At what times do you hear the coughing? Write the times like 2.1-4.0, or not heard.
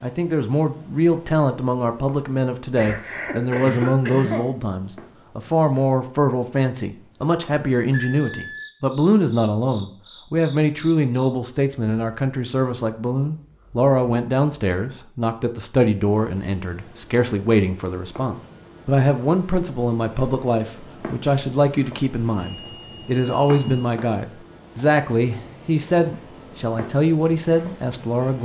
2.8-4.5.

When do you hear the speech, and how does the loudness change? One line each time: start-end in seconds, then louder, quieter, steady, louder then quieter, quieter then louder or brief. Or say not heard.
0.0-28.4 steady.